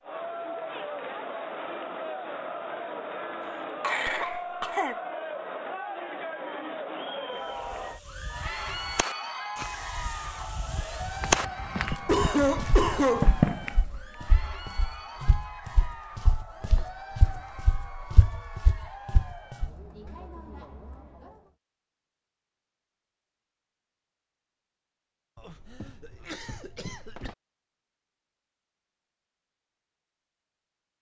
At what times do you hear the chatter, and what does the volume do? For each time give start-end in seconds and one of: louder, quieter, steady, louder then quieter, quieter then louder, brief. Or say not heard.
0.0-21.6 quieter.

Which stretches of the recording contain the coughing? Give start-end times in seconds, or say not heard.
3.8-5.0, 12.1-13.3, 25.4-27.4.